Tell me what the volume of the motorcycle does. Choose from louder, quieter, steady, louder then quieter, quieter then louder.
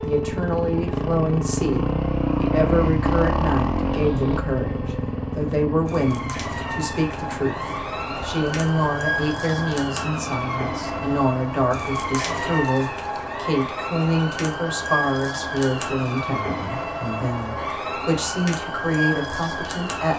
quieter.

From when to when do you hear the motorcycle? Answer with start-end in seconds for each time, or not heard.
0.0-12.6.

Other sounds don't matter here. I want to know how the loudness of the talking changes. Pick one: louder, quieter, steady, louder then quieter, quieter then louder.
steady.